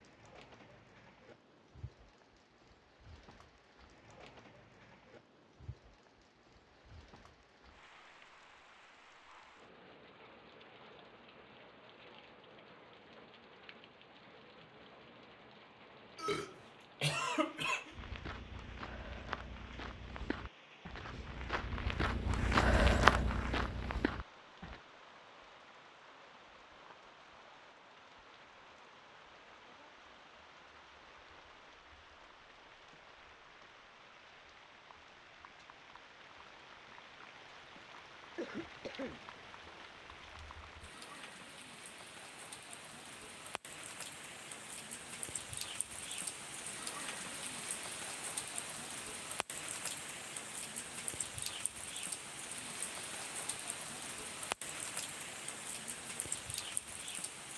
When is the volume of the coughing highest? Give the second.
17 s.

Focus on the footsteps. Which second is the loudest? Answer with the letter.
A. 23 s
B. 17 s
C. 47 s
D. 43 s
A.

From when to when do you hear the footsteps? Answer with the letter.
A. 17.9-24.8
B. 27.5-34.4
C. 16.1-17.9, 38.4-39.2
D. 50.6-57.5
A.